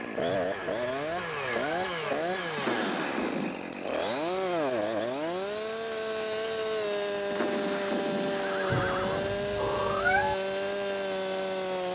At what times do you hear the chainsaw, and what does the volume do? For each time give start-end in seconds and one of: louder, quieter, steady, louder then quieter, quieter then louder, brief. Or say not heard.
0.0-11.8 steady.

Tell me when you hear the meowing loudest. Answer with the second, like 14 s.
10 s.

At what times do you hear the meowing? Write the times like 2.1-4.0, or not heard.
0.2-1.9, 8.7-10.3.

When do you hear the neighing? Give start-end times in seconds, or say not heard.
2.5-3.5, 7.2-9.3.